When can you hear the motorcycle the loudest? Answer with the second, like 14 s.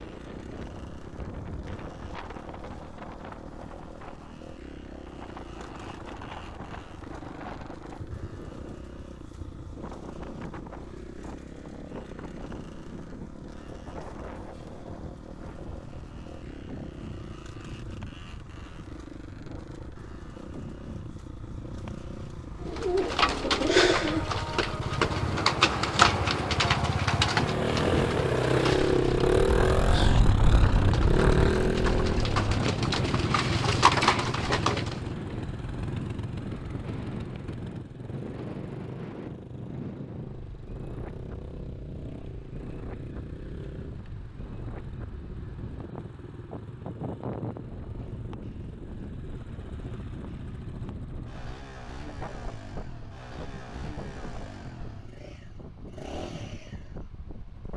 29 s.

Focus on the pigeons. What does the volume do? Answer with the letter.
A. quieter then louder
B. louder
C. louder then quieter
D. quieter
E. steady
A.